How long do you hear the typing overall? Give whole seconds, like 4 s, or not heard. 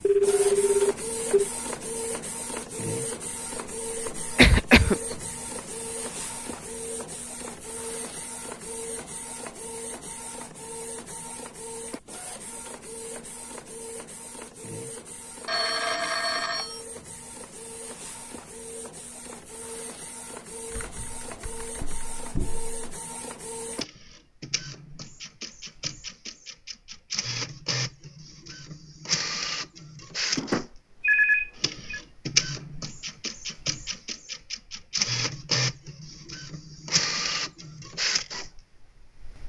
2 s.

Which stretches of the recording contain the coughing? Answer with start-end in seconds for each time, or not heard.
4.2-5.2.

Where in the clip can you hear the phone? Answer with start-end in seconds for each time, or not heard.
0.0-1.5, 15.4-16.8, 30.4-32.0.